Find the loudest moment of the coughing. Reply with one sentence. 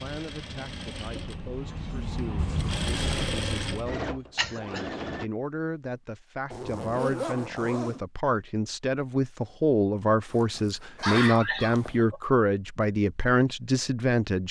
The loudest moment of the coughing is at 11 seconds.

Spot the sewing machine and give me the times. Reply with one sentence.
You can hear the sewing machine from 0.0 to 5.3 s.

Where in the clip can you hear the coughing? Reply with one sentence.
The coughing can be heard from 4.3 to 5.0 s and from 11.0 to 12.2 s.